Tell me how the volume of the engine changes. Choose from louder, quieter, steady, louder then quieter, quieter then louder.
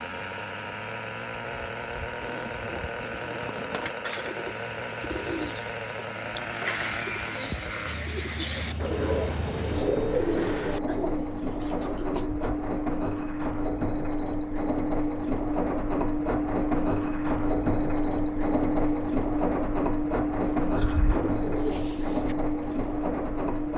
louder.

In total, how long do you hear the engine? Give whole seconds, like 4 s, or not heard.
24 s.